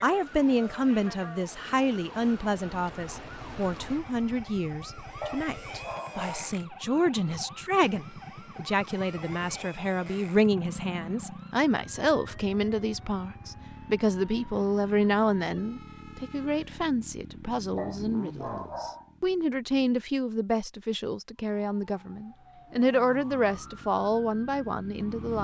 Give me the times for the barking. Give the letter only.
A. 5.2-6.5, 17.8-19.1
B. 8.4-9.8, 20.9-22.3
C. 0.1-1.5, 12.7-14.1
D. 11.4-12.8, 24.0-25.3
A.